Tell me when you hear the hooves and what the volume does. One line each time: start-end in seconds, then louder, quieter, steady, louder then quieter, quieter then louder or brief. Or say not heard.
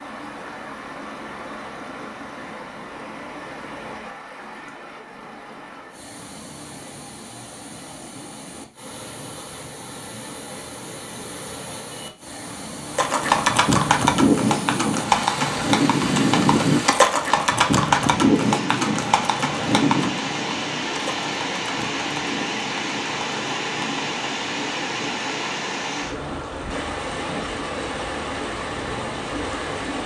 12.9-24.1 quieter.